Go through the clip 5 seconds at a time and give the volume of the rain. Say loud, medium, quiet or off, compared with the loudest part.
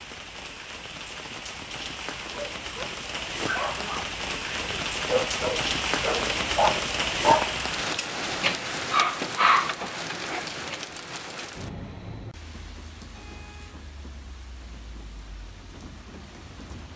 medium, loud, medium, quiet.